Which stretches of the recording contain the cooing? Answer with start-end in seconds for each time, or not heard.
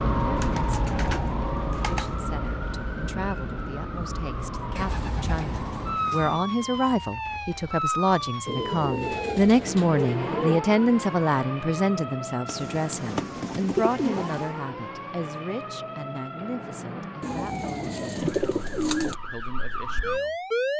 0.3-2.1, 4.8-6.4, 8.4-10.6, 12.4-14.6, 17.2-19.1.